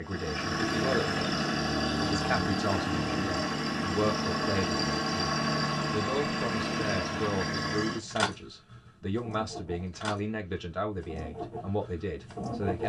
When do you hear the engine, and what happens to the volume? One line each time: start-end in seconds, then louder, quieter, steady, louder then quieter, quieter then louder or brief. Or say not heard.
0.1-12.8 quieter.